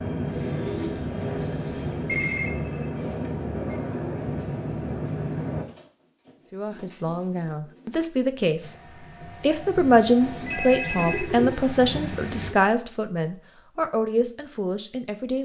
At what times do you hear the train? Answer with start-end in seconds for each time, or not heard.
0.0-5.7, 8.6-12.6.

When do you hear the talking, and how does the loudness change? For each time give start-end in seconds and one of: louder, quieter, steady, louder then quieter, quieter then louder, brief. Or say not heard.
6.5-8.8 brief
9.4-15.4 quieter.